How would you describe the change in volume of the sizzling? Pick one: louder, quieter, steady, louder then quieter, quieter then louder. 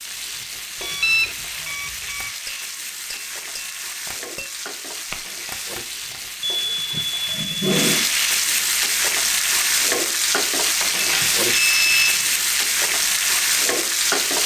louder.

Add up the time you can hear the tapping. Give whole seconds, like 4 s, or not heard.
6 s.